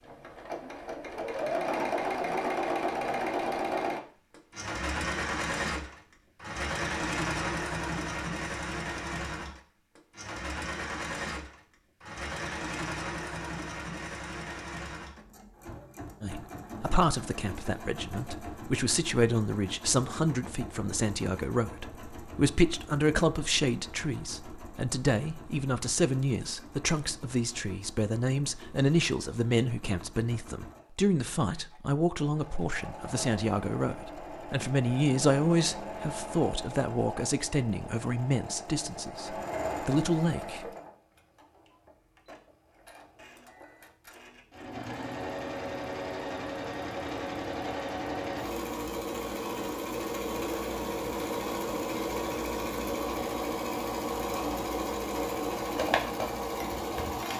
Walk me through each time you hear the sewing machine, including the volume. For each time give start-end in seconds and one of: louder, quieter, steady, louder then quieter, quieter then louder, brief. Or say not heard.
0.0-57.3 quieter then louder.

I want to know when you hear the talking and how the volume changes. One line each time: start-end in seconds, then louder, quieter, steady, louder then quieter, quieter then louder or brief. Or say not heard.
16.2-40.6 steady.